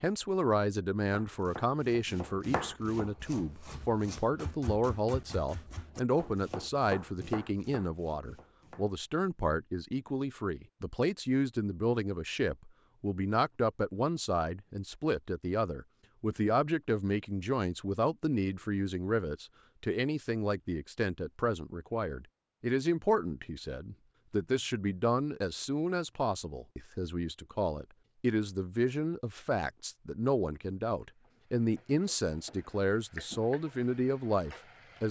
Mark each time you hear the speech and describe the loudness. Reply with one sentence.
You can hear the speech from 0.0 to 35.0 s, at a steady volume.